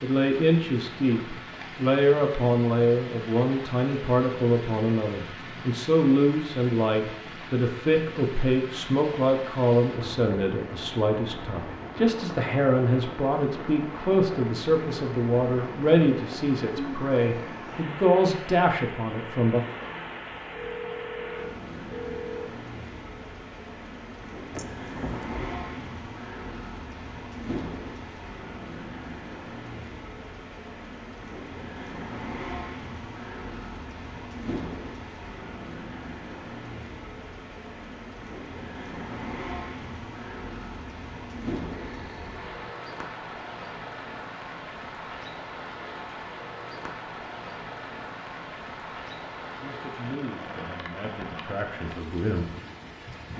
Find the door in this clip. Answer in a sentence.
You can hear the door from 24.5 to 25.6 s.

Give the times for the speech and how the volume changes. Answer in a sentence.
The speech can be heard from 0.0 to 19.6 s, at a steady volume; and briefly from 49.6 to 52.5 s.